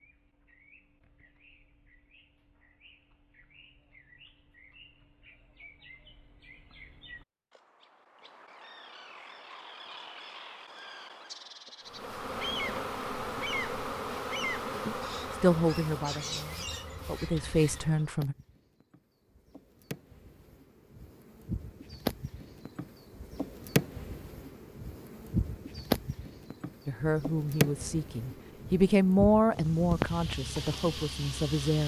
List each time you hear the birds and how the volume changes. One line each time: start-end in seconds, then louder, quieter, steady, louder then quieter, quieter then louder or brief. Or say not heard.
0.0-18.0 louder.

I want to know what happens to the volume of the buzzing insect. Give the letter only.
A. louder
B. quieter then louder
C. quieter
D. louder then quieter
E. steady
B.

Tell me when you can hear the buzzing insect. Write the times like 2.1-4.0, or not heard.
11.9-31.8.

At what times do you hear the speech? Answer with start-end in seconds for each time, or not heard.
14.8-18.4, 26.9-31.8.